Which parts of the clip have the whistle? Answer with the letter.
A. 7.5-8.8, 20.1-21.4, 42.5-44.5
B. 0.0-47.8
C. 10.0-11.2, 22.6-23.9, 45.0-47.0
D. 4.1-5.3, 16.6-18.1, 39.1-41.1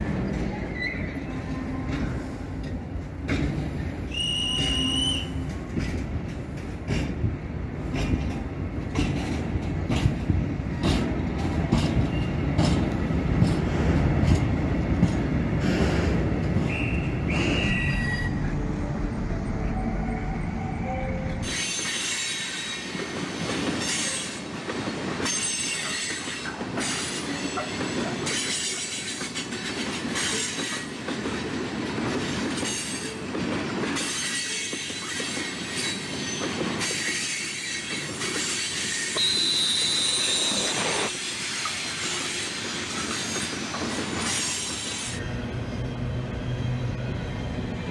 D.